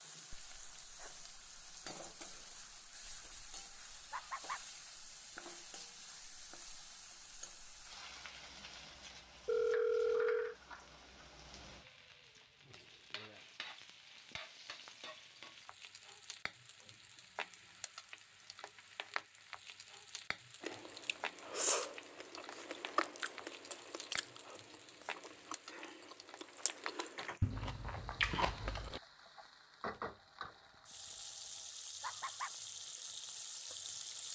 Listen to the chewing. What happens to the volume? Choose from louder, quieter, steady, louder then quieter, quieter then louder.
quieter then louder.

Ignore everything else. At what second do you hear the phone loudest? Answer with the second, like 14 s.
10 s.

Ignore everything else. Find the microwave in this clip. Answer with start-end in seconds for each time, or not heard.
not heard.